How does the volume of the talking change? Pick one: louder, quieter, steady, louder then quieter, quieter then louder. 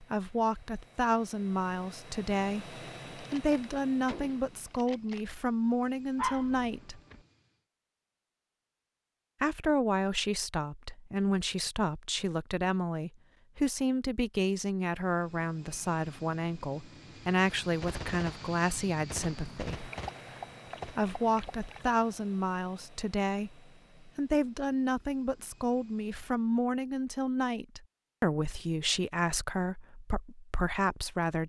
steady.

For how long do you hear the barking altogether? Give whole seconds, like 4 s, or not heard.
3 s.